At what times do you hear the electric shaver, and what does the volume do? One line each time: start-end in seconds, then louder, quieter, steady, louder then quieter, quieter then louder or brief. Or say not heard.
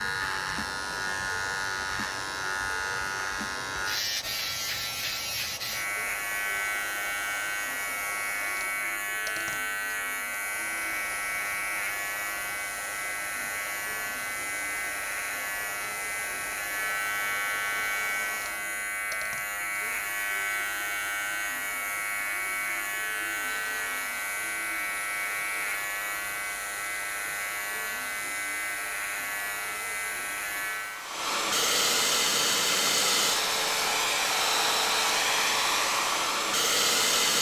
0.0-31.1 steady.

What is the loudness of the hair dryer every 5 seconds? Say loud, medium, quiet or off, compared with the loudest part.
quiet, quiet, quiet, quiet, quiet, quiet, loud, loud.